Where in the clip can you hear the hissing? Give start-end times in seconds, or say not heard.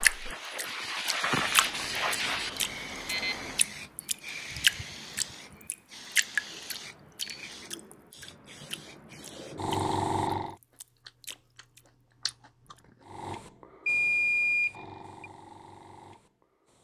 0.0-10.6, 13.0-16.7.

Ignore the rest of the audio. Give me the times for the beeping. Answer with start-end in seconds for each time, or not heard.
1.4-3.6, 13.8-15.3.